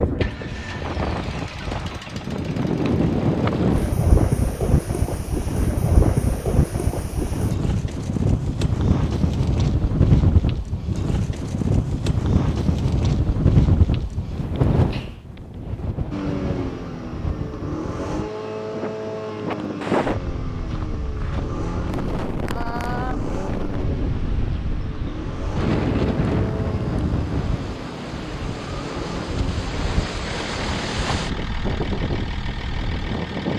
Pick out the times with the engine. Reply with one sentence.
The engine can be heard from 0.1 to 4.0 s and from 16.1 to 33.5 s.